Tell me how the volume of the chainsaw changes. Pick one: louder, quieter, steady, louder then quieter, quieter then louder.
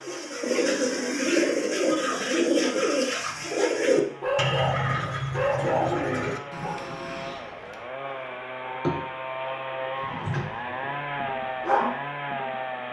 louder.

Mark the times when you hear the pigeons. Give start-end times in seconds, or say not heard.
0.0-6.8.